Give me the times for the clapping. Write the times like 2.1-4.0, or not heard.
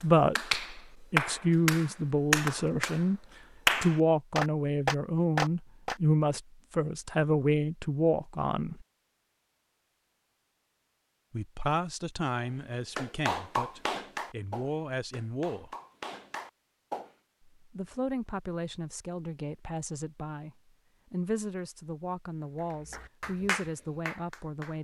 0.0-6.0, 12.3-17.1, 22.5-24.7.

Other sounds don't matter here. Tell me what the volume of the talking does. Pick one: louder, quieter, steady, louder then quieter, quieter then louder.
quieter.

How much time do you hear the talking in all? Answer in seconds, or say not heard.
20 s.